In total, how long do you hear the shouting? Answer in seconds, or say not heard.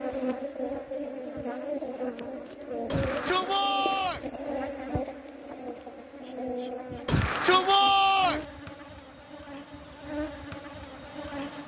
3 s.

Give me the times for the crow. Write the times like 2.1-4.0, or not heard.
not heard.